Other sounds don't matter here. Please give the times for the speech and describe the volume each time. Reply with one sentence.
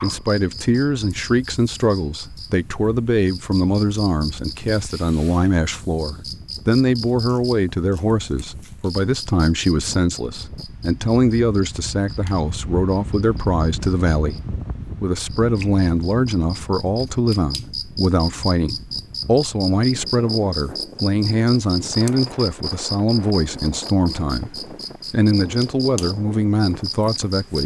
You can hear the speech from 0.0 to 14.4 s, at a steady volume; and from 15.0 to 27.6 s, at a steady volume.